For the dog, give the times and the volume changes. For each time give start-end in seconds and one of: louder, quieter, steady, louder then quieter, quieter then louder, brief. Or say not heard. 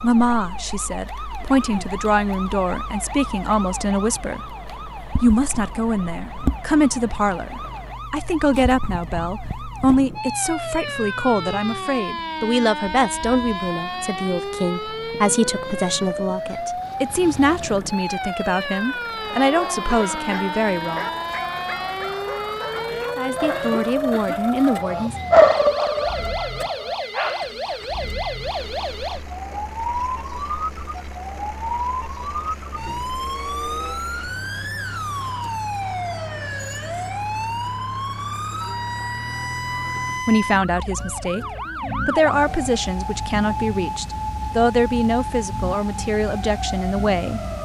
19.4-27.8 louder then quieter.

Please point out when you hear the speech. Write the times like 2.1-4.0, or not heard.
0.0-4.4, 5.2-21.1, 23.1-25.1, 40.2-47.4.